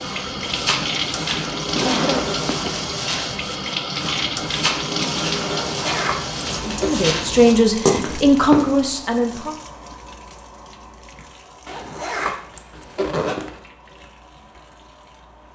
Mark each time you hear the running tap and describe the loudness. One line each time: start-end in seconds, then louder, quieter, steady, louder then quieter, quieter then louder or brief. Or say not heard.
0.0-15.5 quieter.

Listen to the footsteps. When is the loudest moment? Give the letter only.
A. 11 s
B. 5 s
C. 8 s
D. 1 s
C.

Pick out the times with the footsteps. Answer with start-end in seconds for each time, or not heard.
0.0-8.7.